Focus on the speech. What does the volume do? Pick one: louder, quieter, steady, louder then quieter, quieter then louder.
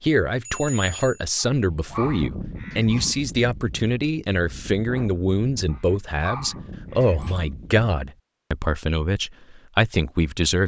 steady.